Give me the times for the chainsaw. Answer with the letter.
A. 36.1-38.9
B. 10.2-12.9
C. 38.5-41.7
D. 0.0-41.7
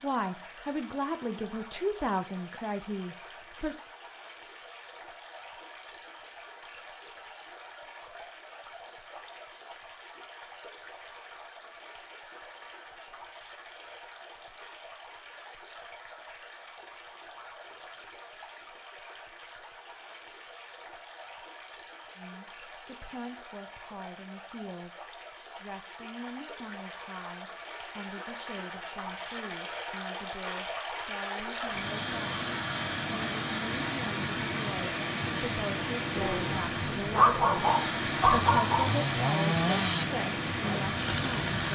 C.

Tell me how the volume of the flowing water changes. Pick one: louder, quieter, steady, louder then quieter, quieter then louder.
louder.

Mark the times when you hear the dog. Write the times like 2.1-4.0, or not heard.
36.1-38.9.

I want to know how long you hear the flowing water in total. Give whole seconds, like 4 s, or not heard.
42 s.